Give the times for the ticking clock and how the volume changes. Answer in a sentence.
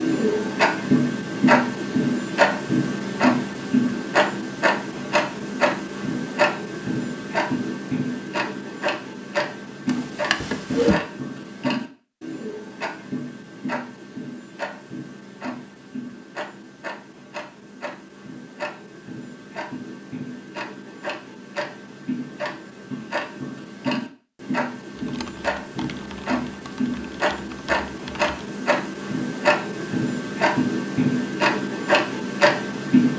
You can hear the ticking clock from 0.0 to 33.1 s, getting quieter then louder.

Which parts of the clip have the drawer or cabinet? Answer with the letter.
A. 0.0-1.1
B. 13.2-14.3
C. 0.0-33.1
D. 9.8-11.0
D.